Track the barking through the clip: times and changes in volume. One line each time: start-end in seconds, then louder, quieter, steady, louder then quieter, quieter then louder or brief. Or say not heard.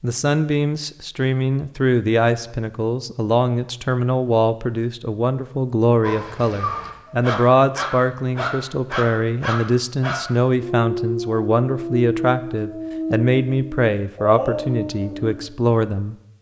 6.0-15.5 steady.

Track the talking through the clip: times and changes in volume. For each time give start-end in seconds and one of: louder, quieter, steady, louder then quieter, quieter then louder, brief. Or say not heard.
0.0-16.1 steady.